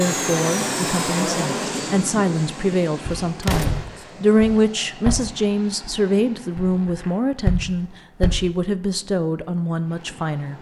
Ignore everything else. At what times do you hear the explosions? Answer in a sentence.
You can hear the explosions from 3.4 to 3.9 s.